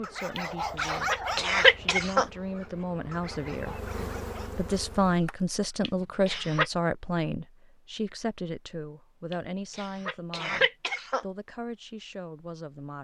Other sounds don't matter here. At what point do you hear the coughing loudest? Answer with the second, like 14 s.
2 s.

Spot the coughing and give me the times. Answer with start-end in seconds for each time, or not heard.
0.3-2.2, 5.8-6.7, 9.3-11.2.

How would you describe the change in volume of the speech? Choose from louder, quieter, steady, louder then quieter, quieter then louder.
louder then quieter.